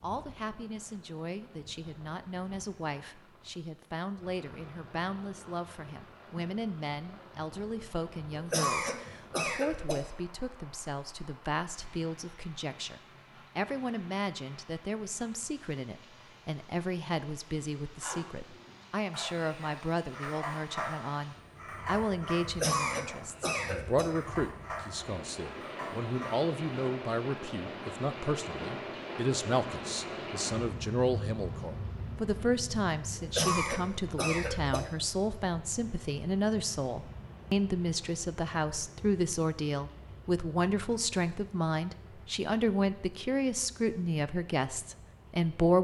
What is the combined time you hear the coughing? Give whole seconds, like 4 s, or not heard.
5 s.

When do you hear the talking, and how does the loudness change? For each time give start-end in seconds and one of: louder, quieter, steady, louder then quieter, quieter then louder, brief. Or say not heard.
0.0-45.7 louder.